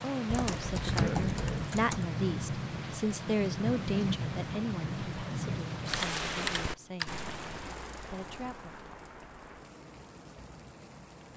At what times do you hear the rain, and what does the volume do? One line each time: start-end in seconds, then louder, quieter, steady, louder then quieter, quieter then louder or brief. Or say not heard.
0.0-11.3 quieter.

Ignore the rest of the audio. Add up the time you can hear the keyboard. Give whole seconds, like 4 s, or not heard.
3 s.